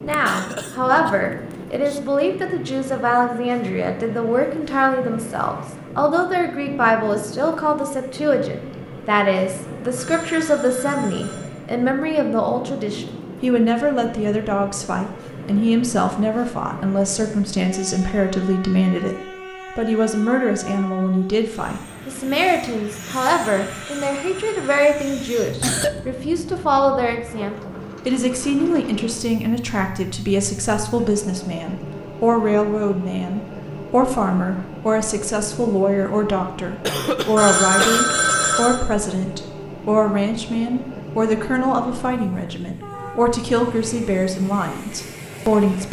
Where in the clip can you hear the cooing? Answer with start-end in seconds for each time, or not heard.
not heard.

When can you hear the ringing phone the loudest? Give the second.
38 s.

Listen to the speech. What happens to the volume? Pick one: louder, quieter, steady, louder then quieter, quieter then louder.
steady.